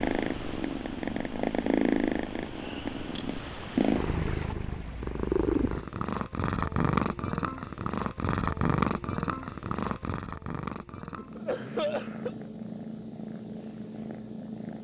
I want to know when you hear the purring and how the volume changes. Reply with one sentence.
The purring can be heard from 0.0 to 14.7 s, getting quieter.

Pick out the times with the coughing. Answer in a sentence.
The coughing can be heard from 11.2 to 12.3 s.